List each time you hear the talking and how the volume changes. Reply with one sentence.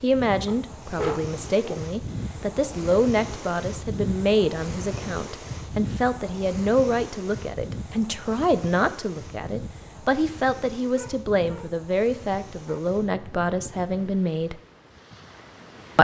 You can hear the talking from 0.0 to 14.6 s, at a steady volume.